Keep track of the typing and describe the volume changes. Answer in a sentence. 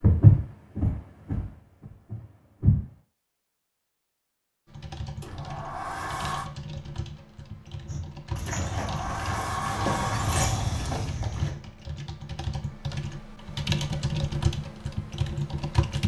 The volume of the typing goes up.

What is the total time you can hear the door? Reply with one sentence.
You can hear the door for 4 seconds altogether.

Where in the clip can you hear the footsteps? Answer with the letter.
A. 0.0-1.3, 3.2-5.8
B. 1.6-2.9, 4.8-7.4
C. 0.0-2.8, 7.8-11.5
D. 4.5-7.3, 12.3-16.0
C.